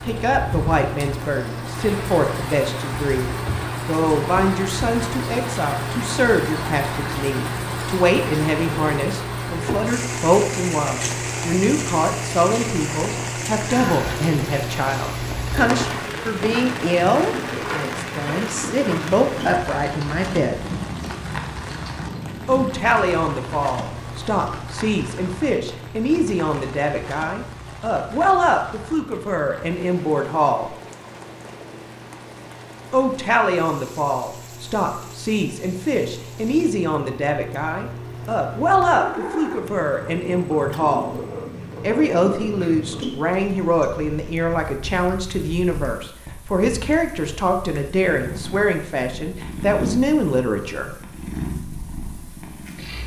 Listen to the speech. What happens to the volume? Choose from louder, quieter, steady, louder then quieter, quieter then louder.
steady.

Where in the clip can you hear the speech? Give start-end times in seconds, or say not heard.
0.0-20.6, 22.4-30.7, 32.9-41.1, 41.8-50.9.